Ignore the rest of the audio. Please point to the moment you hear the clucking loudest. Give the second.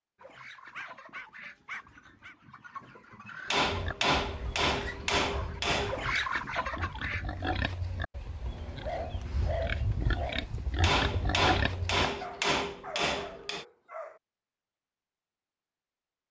6 s.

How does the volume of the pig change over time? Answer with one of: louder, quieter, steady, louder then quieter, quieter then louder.
louder.